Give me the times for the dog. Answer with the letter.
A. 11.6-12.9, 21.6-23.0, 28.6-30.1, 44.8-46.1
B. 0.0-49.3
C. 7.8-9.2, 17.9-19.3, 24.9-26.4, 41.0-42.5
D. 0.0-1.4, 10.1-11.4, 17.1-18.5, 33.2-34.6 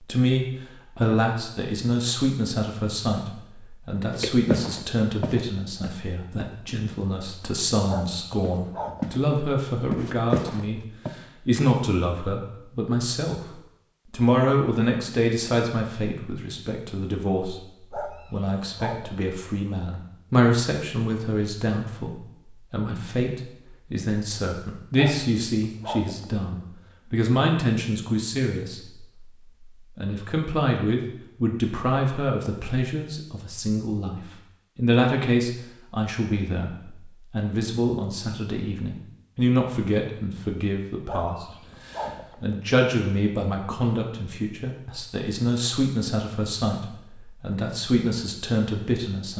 C.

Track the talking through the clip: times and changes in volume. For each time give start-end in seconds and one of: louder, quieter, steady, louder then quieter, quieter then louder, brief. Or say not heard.
0.0-49.3 steady.